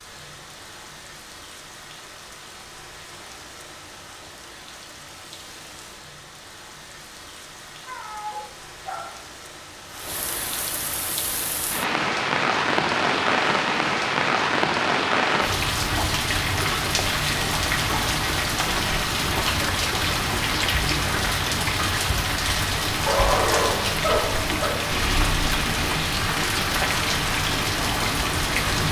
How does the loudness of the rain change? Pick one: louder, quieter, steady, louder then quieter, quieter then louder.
louder.